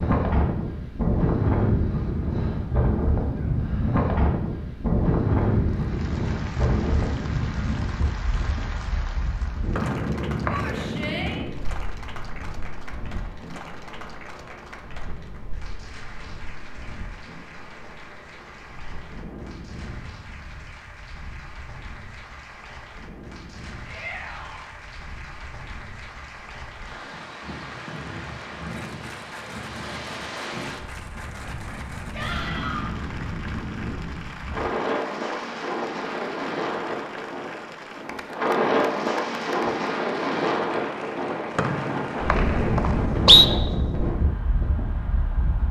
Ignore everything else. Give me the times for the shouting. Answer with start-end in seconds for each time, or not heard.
10.5-11.4, 23.9-24.7, 32.1-32.9.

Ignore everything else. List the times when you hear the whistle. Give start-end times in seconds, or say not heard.
9.8-10.8, 41.5-43.5.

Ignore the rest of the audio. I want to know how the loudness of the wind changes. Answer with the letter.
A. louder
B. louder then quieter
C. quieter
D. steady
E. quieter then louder
E.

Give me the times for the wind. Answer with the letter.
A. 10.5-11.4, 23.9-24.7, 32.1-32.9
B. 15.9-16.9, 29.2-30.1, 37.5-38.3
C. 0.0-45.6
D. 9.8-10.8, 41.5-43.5
C.